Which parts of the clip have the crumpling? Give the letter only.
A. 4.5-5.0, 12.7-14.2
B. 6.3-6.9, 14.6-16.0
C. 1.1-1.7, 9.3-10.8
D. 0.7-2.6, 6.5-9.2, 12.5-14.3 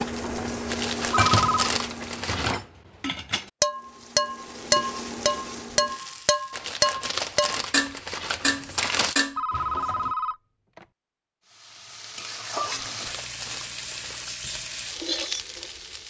D.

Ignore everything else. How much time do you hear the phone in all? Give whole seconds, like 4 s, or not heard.
2 s.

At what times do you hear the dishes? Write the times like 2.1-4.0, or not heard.
0.1-10.2.